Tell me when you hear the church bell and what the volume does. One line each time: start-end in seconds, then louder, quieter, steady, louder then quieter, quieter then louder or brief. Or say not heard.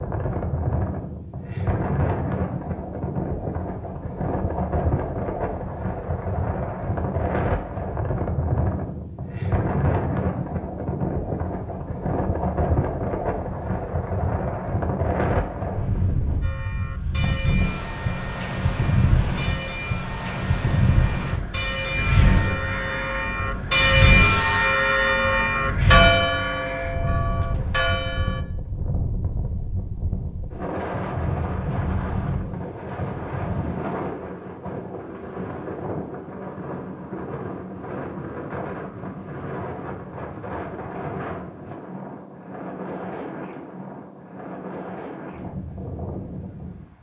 16.4-28.4 louder.